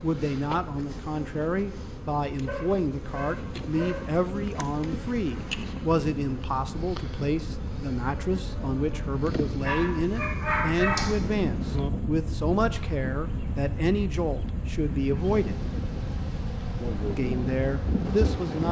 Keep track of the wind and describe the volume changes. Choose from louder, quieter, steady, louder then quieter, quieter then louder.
louder.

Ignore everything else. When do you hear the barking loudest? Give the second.
11 s.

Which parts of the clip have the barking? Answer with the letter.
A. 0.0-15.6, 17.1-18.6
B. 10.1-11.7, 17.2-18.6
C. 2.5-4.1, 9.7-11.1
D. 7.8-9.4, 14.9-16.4
C.